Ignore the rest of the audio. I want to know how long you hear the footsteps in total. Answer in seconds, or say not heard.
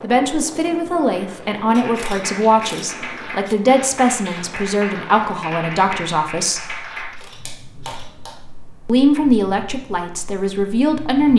not heard.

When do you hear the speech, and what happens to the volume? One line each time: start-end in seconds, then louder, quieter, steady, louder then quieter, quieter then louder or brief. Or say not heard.
0.0-6.7 steady
8.8-11.3 brief.